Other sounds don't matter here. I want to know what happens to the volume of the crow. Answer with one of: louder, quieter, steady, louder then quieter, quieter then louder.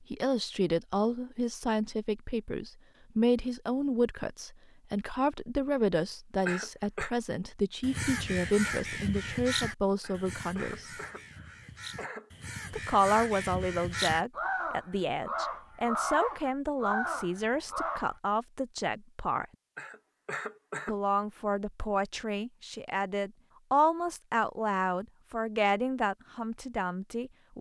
quieter then louder.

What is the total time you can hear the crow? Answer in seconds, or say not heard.
10 s.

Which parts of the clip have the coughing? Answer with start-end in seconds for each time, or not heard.
6.5-7.1, 10.0-12.3, 19.8-20.9.